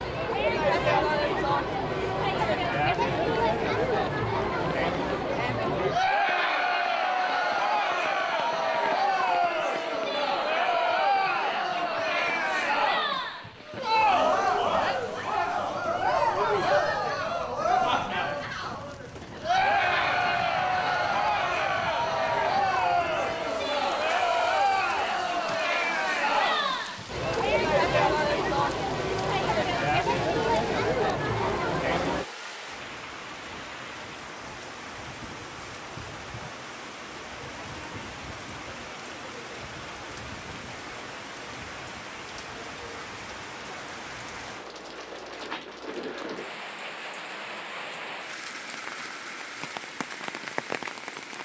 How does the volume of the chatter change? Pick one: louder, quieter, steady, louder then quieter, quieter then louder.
steady.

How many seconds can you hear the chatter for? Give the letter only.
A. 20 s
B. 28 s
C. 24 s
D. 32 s
D.